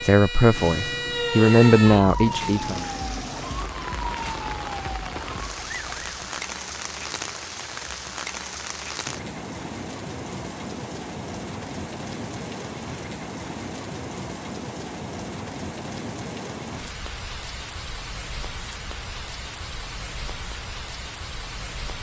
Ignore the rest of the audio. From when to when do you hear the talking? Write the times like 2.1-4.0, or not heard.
0.0-2.9.